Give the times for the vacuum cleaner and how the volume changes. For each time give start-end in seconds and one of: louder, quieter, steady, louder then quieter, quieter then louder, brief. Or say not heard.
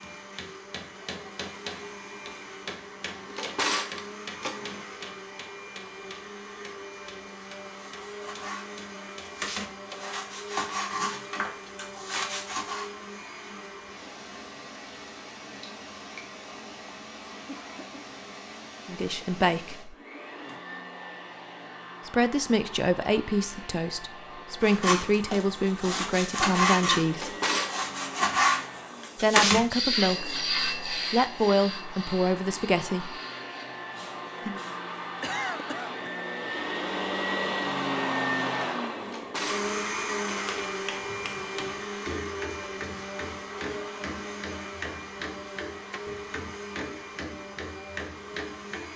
0.0-48.9 louder.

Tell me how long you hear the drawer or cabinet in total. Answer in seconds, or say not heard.
3 s.